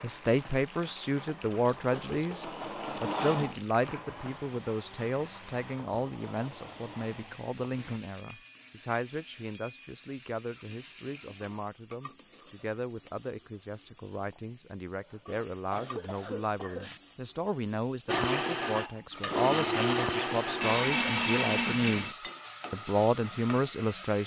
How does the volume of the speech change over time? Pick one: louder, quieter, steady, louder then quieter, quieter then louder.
quieter then louder.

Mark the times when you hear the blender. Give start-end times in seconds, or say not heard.
0.0-8.0, 18.1-22.1.